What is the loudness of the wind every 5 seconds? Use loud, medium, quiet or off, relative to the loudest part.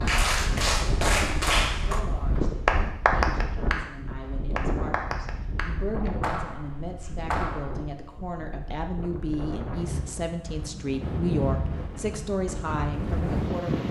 loud, medium, loud.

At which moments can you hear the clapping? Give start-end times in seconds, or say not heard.
0.0-7.8.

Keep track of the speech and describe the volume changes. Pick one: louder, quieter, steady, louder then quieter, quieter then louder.
louder.